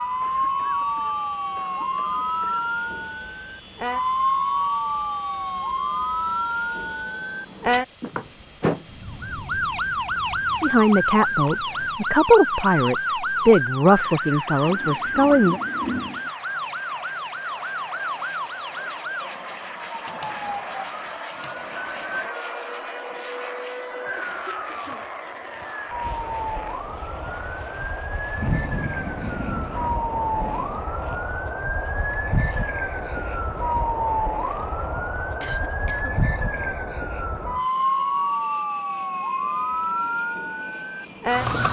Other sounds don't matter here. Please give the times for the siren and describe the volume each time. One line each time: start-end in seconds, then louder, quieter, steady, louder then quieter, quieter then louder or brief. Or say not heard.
0.0-41.6 quieter then louder.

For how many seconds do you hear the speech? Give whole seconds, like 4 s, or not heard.
5 s.